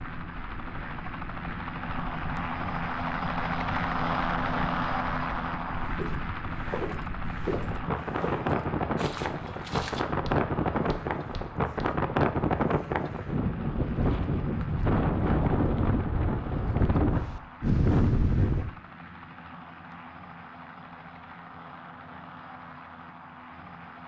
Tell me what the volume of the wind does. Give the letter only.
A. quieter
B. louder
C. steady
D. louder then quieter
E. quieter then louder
B.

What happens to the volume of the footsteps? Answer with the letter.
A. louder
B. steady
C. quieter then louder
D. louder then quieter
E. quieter
E.